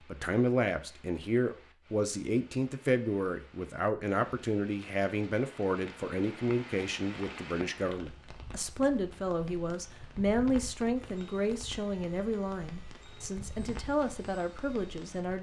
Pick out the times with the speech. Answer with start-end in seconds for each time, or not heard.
0.1-15.3.